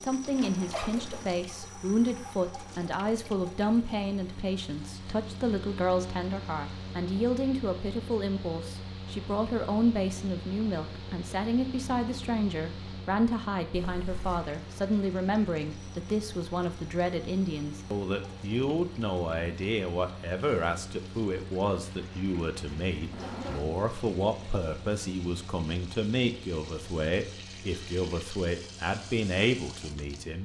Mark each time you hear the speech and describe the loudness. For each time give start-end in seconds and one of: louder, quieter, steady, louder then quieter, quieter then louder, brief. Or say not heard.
0.0-30.4 steady.